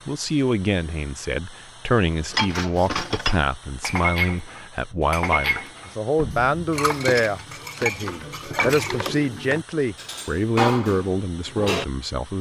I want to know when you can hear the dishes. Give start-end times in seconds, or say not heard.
2.3-11.8.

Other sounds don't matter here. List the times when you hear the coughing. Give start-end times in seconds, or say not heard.
not heard.